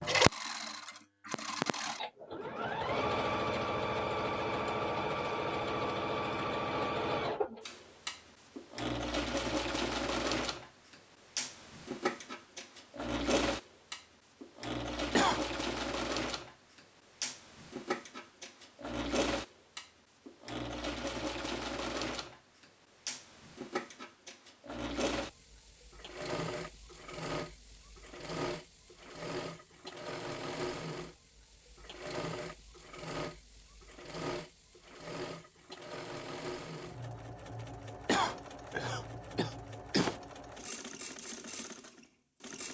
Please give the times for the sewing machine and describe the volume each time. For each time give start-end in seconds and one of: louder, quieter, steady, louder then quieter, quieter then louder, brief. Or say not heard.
0.0-42.7 quieter.